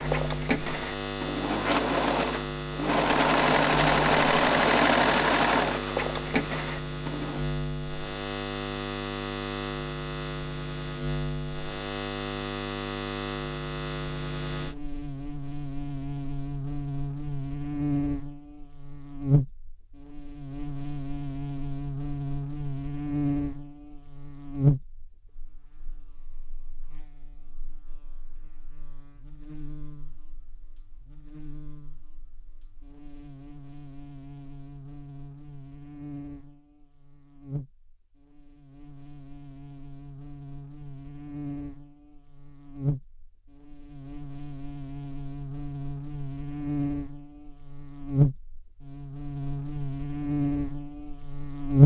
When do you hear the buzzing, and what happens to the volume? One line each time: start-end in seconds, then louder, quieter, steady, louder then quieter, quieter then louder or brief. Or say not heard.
0.0-51.8 quieter then louder.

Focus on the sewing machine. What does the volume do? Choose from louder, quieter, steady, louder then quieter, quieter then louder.
louder then quieter.